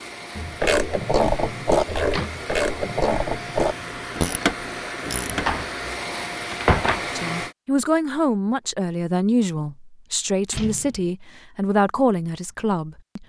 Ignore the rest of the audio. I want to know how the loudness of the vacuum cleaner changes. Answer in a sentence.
The volume of the vacuum cleaner goes up.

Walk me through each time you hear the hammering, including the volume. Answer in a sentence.
You can't hear the hammering here.